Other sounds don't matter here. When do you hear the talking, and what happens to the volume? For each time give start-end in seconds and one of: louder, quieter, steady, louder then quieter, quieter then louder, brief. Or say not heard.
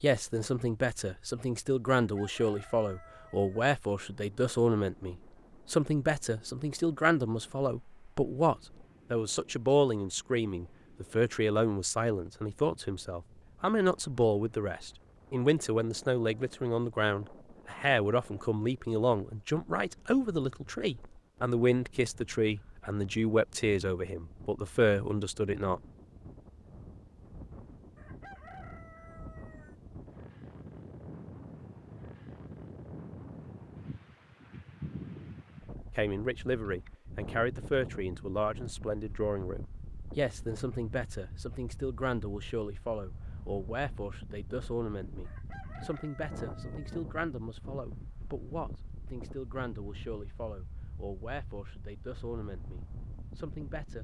0.0-25.8 steady
36.0-53.9 quieter.